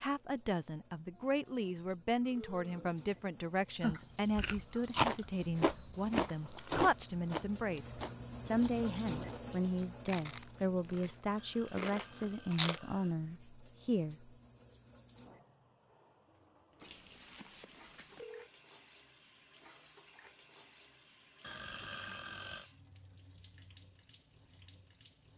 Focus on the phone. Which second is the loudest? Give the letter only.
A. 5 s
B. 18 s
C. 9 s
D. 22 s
B.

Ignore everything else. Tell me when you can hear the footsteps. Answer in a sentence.
The footsteps can't be heard in this clip.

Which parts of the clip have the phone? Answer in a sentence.
The phone can be heard from 16.8 to 18.5 s.